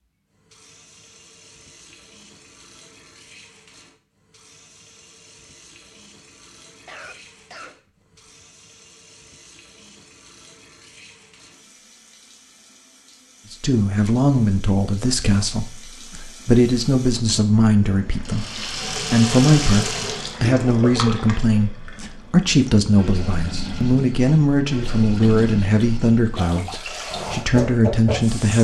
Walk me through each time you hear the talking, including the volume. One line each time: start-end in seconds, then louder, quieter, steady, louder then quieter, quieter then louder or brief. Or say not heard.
13.5-28.5 steady.